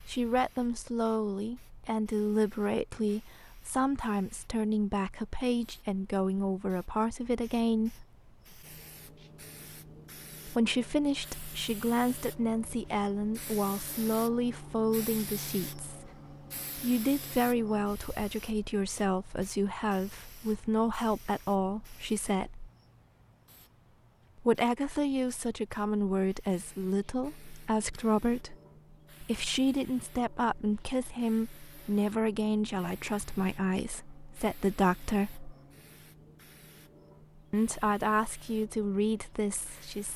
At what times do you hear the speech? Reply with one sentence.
The speech can be heard from 0.1 to 8.1 s, from 10.4 to 16.1 s, from 16.8 to 22.7 s, from 24.4 to 28.6 s, from 29.2 to 35.5 s and from 37.5 to 40.1 s.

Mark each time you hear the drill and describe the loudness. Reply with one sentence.
The drill can't be heard in this clip.